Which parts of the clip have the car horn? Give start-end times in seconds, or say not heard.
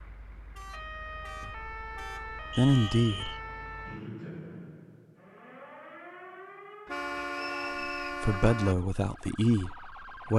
0.6-3.1, 6.8-8.8.